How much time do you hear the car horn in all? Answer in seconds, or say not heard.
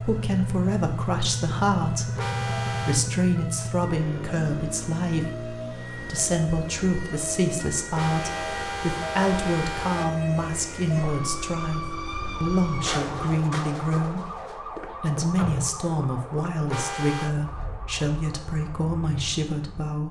4 s.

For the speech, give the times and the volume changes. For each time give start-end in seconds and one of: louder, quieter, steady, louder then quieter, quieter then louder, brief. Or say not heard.
0.0-20.0 steady.